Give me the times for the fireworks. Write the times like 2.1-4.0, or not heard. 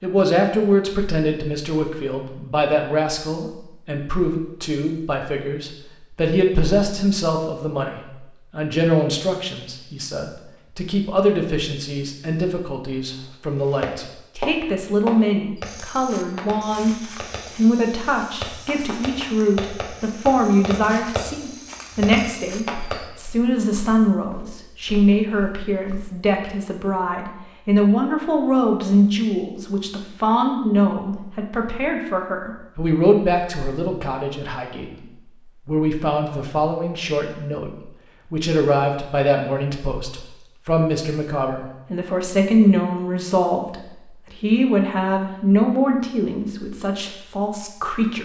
13.6-23.1.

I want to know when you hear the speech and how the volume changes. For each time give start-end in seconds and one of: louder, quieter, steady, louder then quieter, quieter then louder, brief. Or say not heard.
0.0-48.2 steady.